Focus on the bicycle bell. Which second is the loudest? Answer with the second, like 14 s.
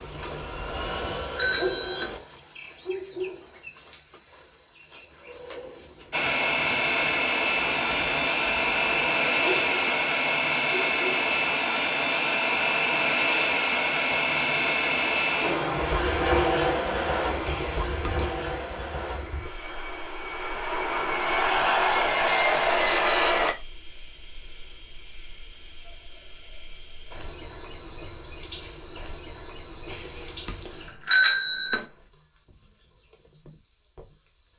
31 s.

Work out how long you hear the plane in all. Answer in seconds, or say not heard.
20 s.